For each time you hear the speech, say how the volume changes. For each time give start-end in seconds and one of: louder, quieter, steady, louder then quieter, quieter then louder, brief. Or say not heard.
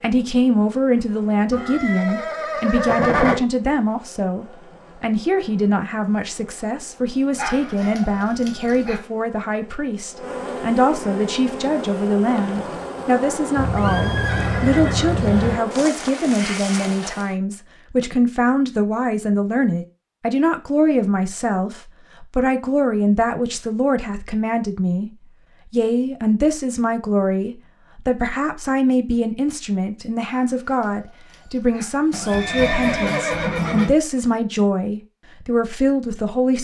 0.0-25.1 steady
25.7-36.5 steady.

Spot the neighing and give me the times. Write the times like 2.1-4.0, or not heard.
1.5-3.4, 13.6-15.6, 32.1-34.0.